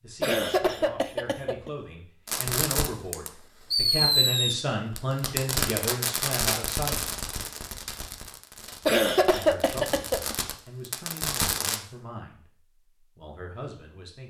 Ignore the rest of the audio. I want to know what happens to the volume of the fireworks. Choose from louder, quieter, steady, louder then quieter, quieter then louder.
quieter then louder.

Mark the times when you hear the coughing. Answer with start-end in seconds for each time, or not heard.
0.2-1.7, 8.8-10.3.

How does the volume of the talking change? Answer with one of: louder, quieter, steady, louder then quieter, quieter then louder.
louder then quieter.